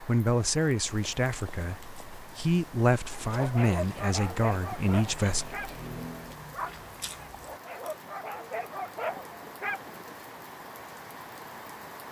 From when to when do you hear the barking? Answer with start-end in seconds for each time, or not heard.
3.3-10.2.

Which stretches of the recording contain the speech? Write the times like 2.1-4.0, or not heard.
0.0-5.6.